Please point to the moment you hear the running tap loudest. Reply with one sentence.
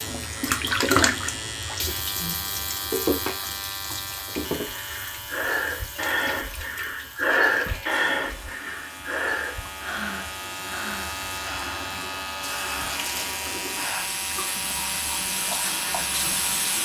The volume of the running tap peaks at 1 second.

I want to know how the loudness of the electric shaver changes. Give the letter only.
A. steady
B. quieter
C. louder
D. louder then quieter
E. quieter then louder
E.